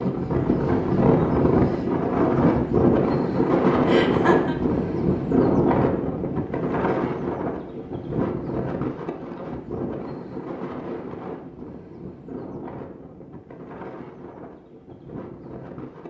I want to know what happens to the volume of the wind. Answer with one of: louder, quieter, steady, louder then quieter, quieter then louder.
quieter.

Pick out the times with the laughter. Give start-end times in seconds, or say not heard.
3.9-4.5.